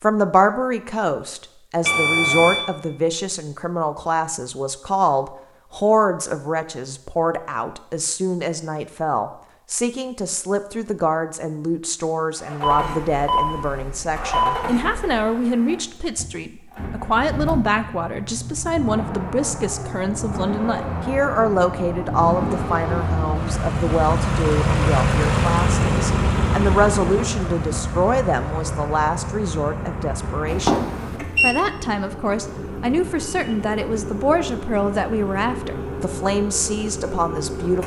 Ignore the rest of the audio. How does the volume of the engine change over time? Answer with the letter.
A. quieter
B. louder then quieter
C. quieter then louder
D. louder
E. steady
B.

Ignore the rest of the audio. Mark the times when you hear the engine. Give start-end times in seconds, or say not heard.
12.3-37.8.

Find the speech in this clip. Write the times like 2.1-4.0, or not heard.
0.0-37.8.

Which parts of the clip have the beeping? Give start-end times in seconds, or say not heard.
1.8-2.6, 12.6-15.3, 30.5-31.6.